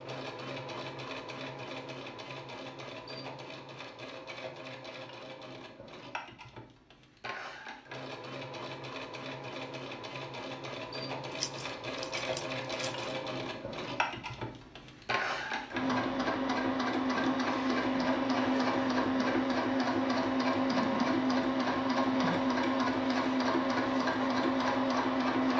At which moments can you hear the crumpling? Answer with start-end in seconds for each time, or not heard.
11.3-13.2.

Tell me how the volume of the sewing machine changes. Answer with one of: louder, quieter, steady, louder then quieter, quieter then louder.
louder.